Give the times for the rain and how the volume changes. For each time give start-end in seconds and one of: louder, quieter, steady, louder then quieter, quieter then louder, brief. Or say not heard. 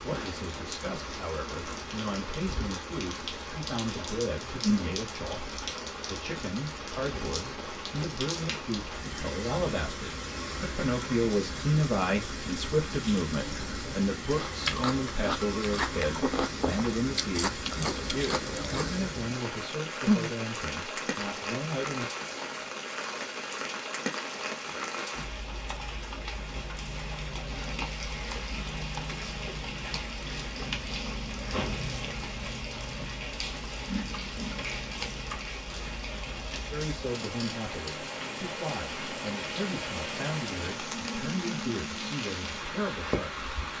0.0-43.7 steady.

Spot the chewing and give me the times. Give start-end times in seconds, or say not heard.
14.3-20.4.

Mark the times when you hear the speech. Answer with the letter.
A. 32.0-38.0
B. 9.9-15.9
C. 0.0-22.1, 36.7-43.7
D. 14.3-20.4
C.